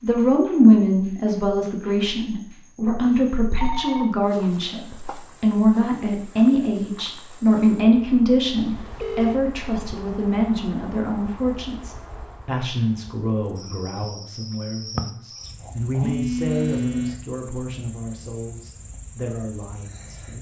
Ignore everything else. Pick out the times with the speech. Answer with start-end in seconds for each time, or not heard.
0.0-20.3.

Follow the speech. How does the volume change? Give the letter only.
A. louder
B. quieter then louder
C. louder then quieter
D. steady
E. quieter
E.